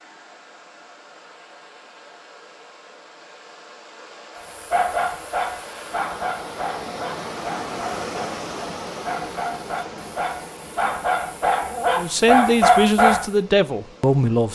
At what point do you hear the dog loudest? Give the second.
13 s.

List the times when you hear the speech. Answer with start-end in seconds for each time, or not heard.
11.9-14.4.